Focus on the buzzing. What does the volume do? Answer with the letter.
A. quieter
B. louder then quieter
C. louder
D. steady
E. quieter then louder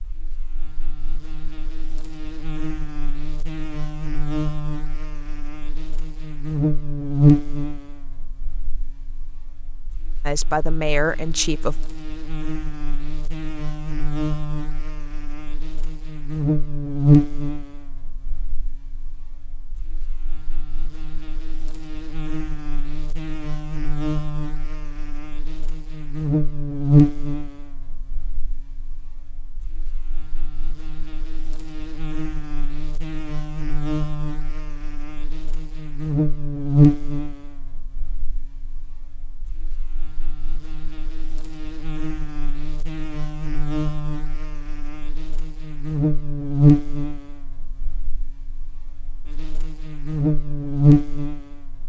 D.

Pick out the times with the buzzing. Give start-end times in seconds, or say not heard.
0.0-51.8.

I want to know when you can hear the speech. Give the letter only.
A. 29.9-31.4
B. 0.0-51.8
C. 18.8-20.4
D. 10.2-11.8
D.